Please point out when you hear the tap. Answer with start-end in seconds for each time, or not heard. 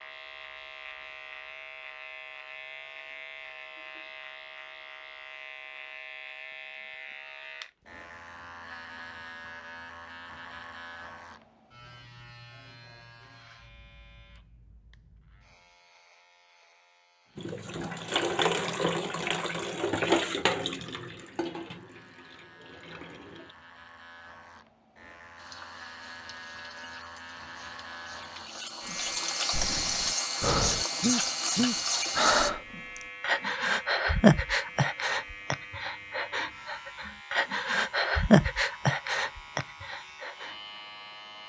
17.4-23.6, 25.4-32.5.